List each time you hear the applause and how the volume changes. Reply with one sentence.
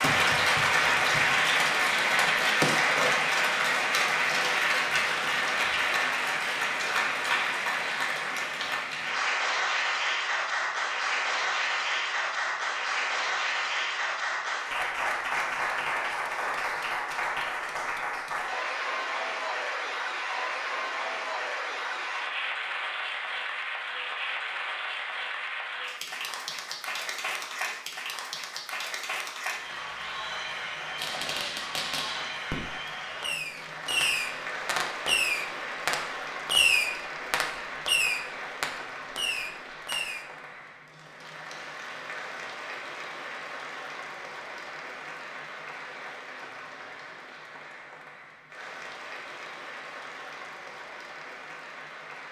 You can hear the applause from 0.0 to 52.2 s, getting quieter.